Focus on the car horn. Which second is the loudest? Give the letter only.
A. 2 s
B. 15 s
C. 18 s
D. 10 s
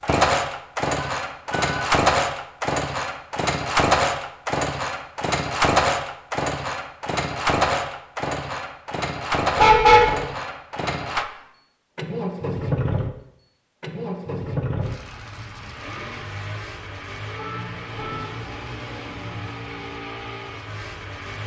D.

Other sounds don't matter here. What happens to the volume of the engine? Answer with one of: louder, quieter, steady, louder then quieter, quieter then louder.
quieter.